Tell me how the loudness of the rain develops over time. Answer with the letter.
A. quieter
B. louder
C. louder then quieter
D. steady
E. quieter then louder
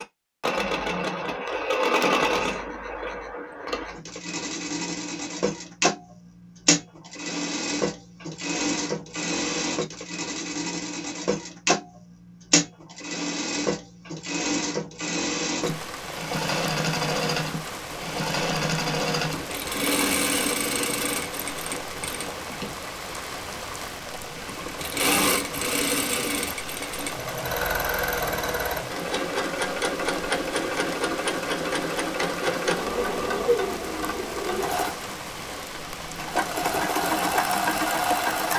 D.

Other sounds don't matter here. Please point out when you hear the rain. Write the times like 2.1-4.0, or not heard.
15.6-38.5.